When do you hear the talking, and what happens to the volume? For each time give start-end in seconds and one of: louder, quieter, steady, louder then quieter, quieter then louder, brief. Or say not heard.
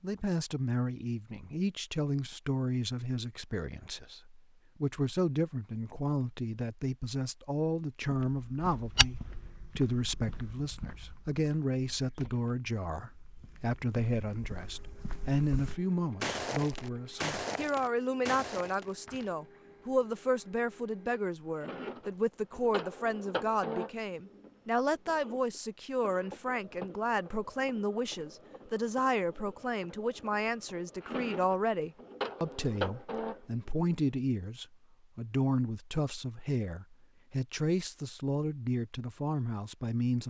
0.0-40.2 steady.